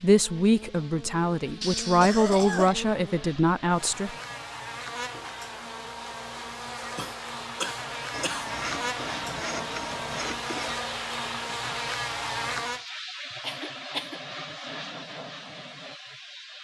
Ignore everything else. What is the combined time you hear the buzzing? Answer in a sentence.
You can hear the buzzing for 13 seconds altogether.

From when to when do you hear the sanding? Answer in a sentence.
The sanding can be heard from 8.1 to 10.9 s.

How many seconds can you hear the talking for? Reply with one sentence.
You can hear the talking for 4 seconds altogether.